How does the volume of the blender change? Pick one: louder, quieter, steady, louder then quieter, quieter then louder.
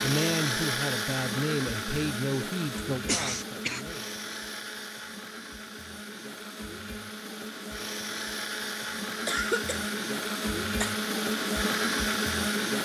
quieter then louder.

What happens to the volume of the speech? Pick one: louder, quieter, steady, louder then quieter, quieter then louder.
quieter.